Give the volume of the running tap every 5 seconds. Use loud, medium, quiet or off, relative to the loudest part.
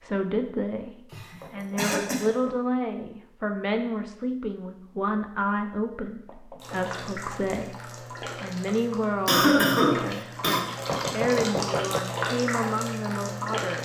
off, medium, loud.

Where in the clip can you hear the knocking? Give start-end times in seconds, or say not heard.
1.4-2.5, 6.2-6.8, 10.8-12.0.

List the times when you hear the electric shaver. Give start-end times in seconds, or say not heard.
not heard.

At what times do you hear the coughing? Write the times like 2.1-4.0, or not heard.
1.1-2.3, 9.2-10.7.